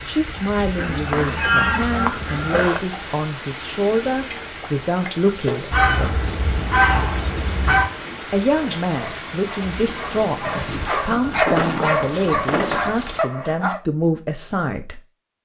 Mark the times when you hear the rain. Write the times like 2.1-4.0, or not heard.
0.0-11.2.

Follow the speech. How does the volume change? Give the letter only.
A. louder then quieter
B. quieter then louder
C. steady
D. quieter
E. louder
C.